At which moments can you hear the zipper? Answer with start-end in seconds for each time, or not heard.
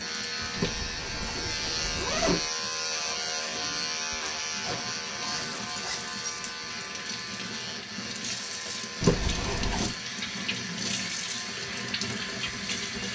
0.6-2.5, 4.6-6.5, 9.0-9.9.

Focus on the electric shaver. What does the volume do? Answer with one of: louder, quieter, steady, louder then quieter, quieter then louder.
quieter.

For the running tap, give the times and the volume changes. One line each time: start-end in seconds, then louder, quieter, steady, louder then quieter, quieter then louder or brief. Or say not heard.
0.0-13.1 louder.